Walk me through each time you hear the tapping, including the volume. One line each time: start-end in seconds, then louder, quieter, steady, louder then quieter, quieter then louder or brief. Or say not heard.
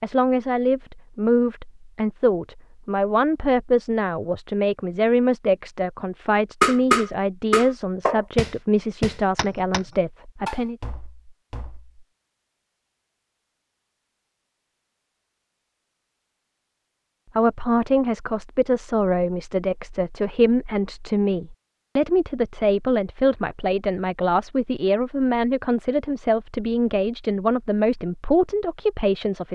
6.6-11.9 quieter.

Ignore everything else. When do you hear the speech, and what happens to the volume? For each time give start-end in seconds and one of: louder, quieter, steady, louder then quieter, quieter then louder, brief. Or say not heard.
0.0-10.8 steady
17.4-29.5 steady.